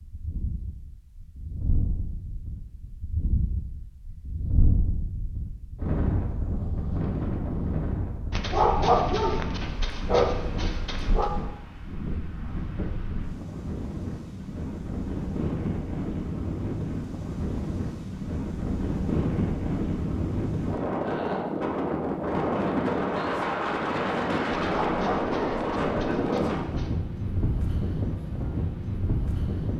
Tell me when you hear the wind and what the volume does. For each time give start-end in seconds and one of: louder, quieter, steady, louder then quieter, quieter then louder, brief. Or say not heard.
0.0-29.7 louder.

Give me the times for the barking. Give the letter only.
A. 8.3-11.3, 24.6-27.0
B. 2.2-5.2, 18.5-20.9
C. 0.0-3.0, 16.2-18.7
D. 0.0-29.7
A.